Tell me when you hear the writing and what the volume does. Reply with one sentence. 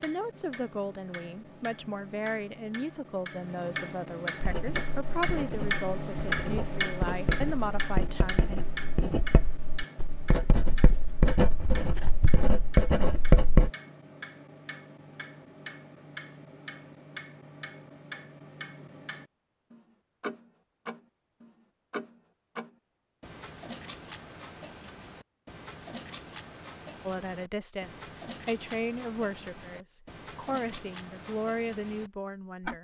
The writing can be heard from 4.4 to 13.7 s, getting louder.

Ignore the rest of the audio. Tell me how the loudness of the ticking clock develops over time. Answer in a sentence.
The volume of the ticking clock goes down.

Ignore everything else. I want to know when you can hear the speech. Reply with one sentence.
You can hear the speech from 0.0 to 8.6 s and from 27.1 to 32.8 s.